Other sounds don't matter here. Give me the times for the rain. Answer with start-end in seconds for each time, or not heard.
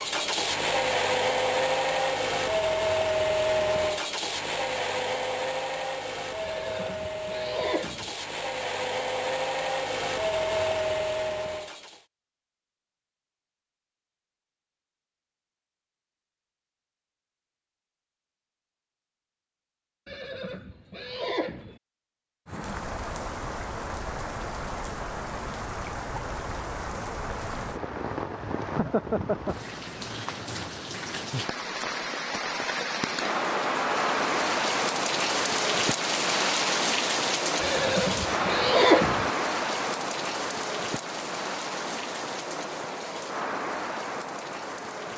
22.4-45.1.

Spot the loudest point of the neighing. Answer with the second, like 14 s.
39 s.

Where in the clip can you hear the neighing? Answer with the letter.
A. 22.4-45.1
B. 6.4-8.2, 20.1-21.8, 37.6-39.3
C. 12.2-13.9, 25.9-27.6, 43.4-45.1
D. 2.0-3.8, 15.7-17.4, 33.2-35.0
B.